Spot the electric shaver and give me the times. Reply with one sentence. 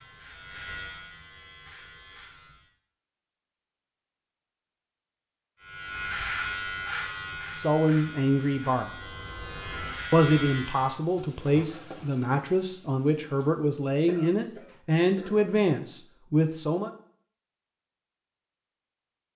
The electric shaver can be heard from 0.0 to 2.7 s and from 5.6 to 10.9 s.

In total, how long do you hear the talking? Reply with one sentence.
The talking can be heard for 8 seconds in total.